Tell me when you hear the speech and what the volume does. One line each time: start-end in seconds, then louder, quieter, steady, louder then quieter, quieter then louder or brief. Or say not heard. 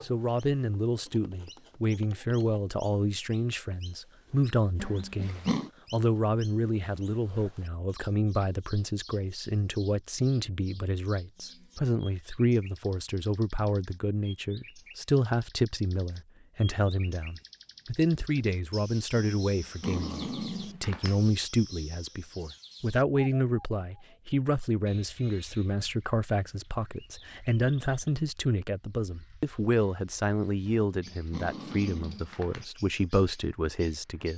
0.0-34.3 steady.